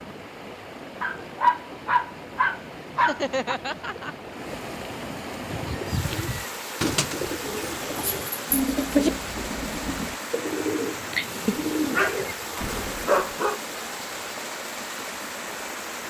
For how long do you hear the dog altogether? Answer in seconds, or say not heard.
6 s.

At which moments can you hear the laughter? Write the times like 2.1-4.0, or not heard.
3.0-4.2.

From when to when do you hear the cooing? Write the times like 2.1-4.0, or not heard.
5.4-13.1.